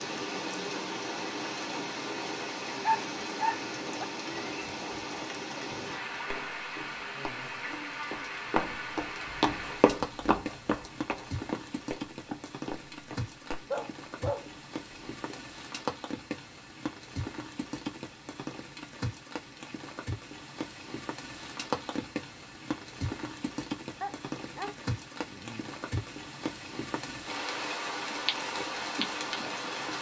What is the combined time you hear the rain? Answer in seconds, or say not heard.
30 s.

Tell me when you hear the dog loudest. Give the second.
3 s.